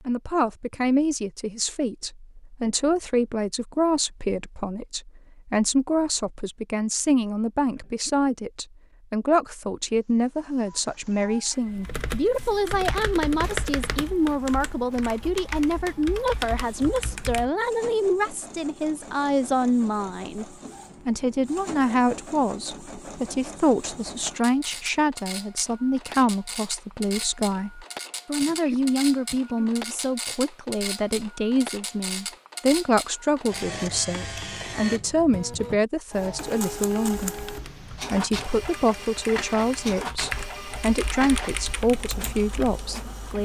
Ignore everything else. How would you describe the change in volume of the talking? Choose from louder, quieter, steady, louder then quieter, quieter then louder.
steady.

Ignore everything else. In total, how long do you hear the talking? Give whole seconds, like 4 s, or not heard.
43 s.